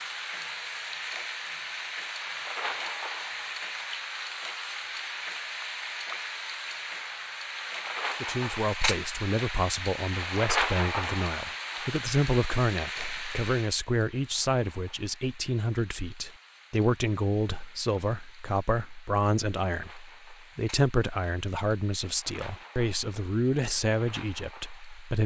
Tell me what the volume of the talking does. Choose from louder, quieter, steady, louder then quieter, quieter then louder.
steady.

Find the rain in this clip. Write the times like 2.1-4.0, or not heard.
0.0-25.2.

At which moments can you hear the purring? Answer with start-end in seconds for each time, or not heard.
not heard.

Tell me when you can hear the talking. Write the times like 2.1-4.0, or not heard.
8.2-25.2.